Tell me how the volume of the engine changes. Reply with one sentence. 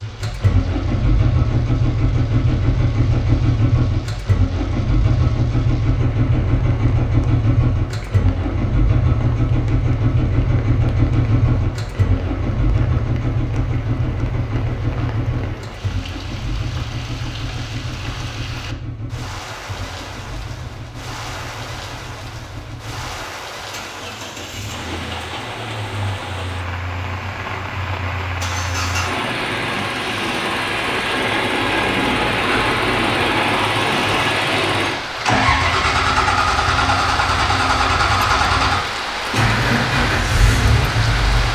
The loudness of the engine goes down, then up.